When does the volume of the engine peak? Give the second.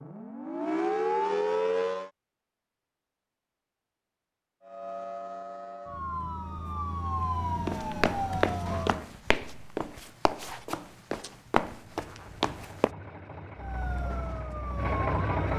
15 s.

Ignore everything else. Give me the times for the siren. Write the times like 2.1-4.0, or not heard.
0.0-2.1, 4.6-9.1, 13.6-15.5.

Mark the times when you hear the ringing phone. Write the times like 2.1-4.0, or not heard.
not heard.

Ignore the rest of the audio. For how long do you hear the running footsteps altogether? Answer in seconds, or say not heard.
5 s.